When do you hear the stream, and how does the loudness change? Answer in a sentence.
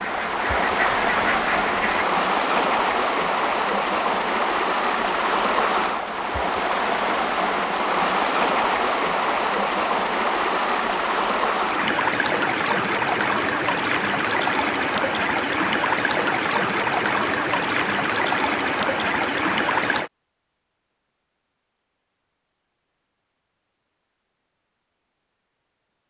The stream can be heard from 0.0 to 20.1 s, at a steady volume.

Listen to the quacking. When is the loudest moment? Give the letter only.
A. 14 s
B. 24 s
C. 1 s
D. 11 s
C.